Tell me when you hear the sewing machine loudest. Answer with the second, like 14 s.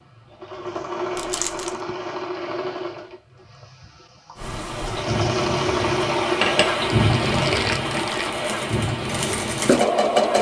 10 s.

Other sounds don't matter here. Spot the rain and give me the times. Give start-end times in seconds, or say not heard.
4.3-10.3.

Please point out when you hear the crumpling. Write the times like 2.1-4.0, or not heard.
1.1-1.8, 6.4-8.3.